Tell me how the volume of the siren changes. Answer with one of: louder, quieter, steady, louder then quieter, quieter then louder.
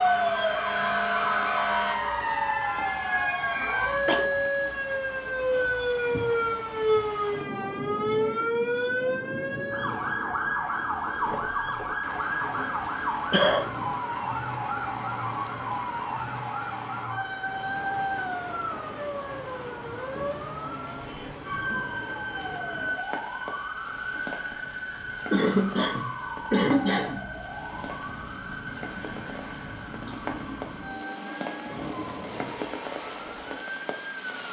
quieter.